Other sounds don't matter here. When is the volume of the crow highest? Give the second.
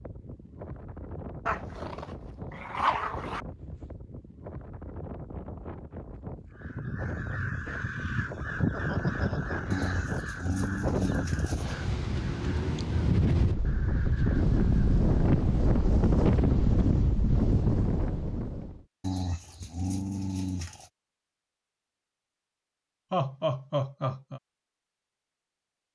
9 s.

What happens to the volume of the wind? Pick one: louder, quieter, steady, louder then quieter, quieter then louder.
louder.